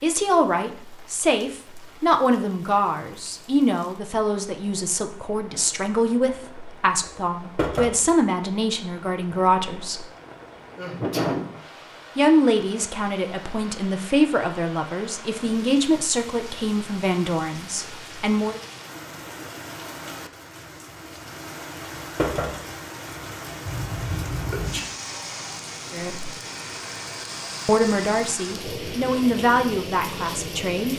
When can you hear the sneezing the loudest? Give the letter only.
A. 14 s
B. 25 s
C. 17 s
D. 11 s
D.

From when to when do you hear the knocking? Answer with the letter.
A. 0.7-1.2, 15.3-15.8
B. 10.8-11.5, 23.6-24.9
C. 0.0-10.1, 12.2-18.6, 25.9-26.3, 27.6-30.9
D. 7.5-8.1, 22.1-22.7
D.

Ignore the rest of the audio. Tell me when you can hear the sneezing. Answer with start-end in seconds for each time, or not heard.
10.8-11.5, 23.6-24.9.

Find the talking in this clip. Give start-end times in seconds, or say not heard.
0.0-10.1, 12.2-18.6, 25.9-26.3, 27.6-30.9.